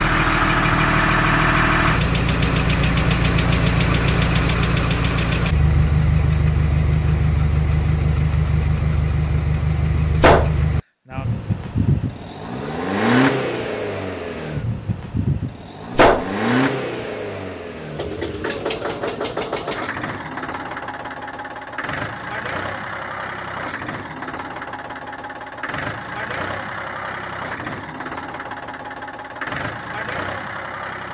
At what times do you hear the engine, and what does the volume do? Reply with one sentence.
The engine can be heard from 0.0 to 31.0 s, getting quieter.